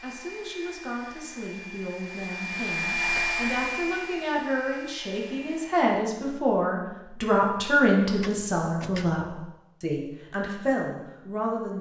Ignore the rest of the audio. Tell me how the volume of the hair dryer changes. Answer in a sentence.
The loudness of the hair dryer goes up, then down.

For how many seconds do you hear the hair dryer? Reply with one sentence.
You can hear the hair dryer for 6 seconds altogether.